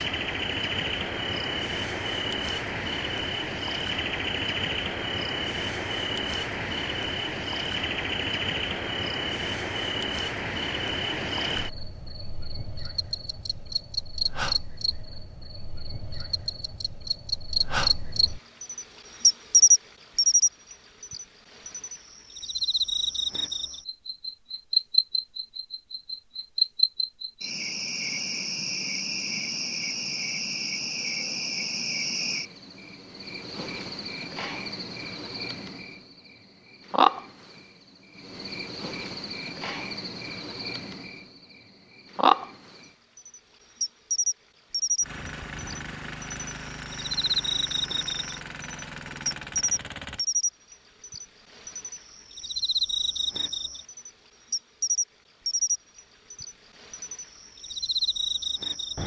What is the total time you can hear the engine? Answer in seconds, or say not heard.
5 s.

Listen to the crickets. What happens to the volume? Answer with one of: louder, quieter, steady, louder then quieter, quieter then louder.
steady.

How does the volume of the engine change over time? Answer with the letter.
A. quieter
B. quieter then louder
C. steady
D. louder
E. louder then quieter
C.